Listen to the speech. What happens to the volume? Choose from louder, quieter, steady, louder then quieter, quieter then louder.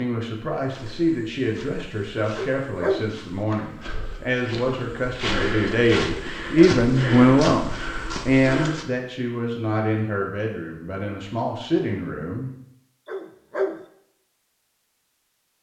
louder then quieter.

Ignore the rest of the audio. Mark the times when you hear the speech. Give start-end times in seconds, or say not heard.
0.0-12.5.